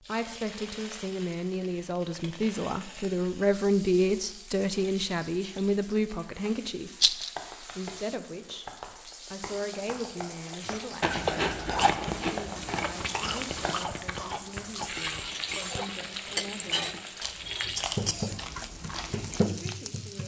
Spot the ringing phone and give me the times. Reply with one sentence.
You can't hear the ringing phone here.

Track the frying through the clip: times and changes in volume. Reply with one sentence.
The frying can be heard from 0.0 to 20.2 s, getting louder.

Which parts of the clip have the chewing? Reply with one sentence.
The chewing can be heard from 10.6 to 19.4 s.